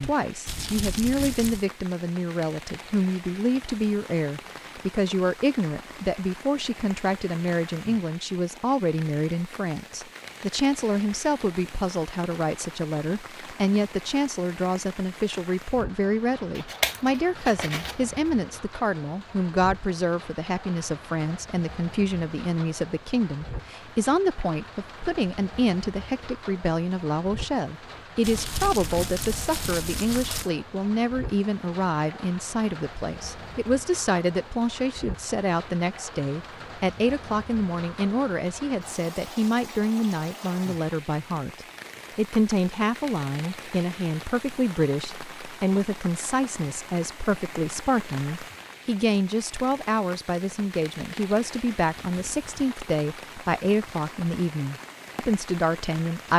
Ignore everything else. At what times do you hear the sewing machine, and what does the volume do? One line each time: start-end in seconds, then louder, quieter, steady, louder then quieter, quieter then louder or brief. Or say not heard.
not heard.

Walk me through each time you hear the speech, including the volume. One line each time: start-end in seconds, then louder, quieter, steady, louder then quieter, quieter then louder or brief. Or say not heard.
0.0-56.3 steady.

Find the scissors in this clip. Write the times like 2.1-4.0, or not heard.
16.6-18.0.